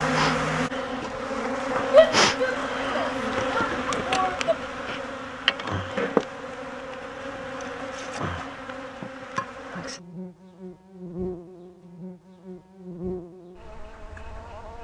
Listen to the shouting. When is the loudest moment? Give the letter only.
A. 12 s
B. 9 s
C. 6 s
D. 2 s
D.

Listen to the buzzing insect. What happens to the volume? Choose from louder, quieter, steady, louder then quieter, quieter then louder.
quieter.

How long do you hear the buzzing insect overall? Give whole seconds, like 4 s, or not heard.
15 s.